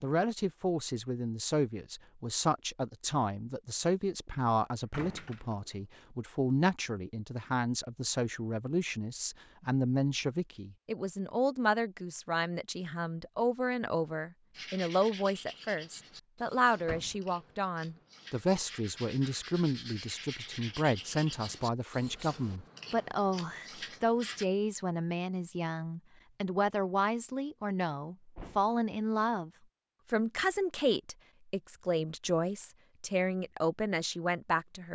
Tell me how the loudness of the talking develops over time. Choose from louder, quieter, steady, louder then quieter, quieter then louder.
steady.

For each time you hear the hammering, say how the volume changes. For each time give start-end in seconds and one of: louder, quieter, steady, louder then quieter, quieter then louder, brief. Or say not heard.
not heard.